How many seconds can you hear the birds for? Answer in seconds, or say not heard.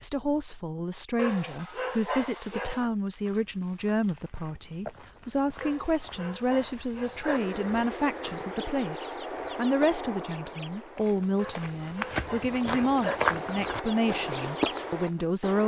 8 s.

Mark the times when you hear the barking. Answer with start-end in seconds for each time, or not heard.
1.1-2.9, 5.6-7.4, 11.3-13.2.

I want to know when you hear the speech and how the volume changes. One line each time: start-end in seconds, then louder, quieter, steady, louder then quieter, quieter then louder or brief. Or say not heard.
0.0-15.6 steady.